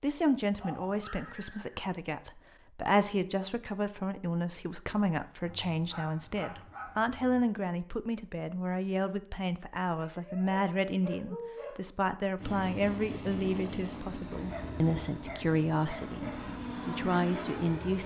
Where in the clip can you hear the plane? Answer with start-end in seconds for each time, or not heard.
12.3-18.0.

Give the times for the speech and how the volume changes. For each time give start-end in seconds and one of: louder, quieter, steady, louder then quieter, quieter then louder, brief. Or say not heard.
0.0-18.0 steady.